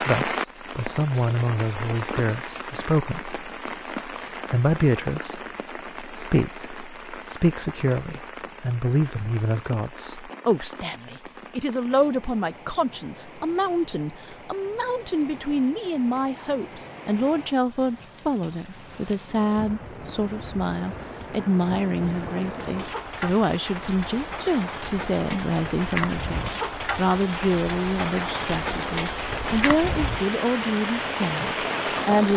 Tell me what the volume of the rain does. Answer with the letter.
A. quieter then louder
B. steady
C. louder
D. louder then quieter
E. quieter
A.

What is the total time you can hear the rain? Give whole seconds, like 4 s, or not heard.
32 s.